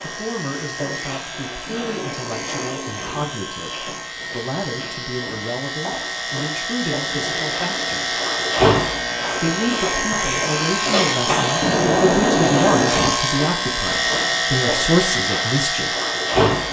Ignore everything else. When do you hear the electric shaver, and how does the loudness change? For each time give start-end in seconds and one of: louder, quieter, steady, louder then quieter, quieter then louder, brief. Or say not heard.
0.0-16.6 louder.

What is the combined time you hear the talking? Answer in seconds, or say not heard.
15 s.